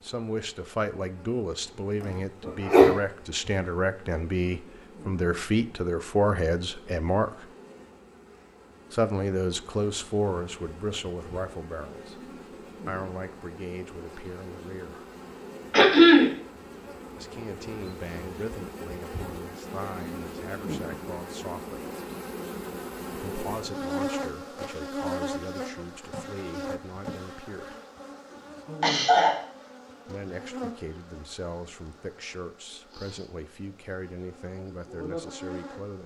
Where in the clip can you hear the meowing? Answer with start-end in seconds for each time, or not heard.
not heard.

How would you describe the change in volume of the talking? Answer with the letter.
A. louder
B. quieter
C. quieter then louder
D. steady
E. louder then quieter
B.